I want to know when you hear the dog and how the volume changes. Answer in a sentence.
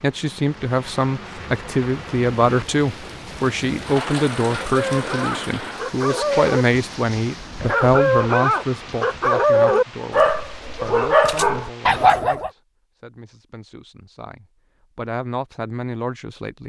The dog can be heard from 4.7 to 12.5 s, getting louder.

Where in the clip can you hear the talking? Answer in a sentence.
The talking can be heard from 0.0 to 16.6 s.